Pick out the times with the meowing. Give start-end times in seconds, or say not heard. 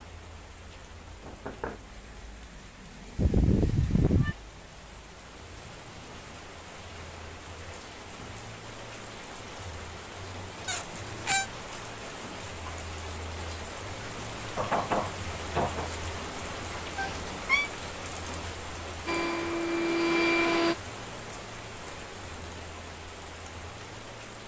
3.1-4.3, 10.7-11.5, 16.9-17.7.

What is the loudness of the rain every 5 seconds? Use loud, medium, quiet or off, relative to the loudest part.
medium, medium, loud, loud, loud.